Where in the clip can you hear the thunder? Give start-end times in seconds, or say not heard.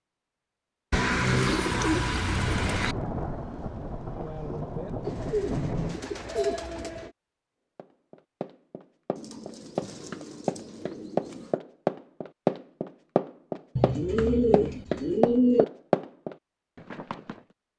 2.4-6.0.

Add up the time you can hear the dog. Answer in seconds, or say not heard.
not heard.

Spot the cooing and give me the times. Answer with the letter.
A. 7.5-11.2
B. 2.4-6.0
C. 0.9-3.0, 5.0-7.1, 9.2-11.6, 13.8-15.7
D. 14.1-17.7
C.